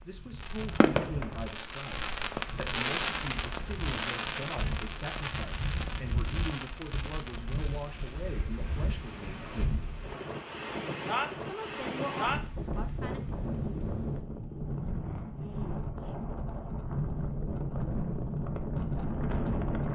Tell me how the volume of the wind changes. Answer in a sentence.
The volume of the wind goes up.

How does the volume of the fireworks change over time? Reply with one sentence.
The volume of the fireworks goes down.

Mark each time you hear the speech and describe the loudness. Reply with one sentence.
The speech can be heard from 0.0 to 9.8 s, at a steady volume; and briefly from 11.4 to 13.2 s.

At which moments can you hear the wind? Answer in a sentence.
You can hear the wind from 0.0 to 19.9 s.